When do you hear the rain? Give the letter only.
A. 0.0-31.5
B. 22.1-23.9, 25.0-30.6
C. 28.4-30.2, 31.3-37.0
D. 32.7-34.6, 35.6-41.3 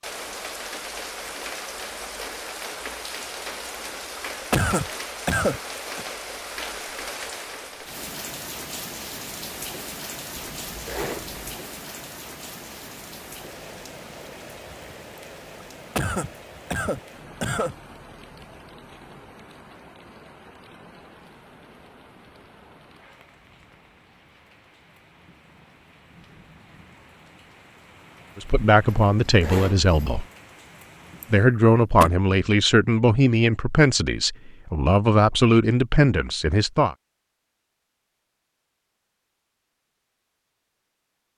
A.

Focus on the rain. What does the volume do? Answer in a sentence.
The loudness of the rain goes down.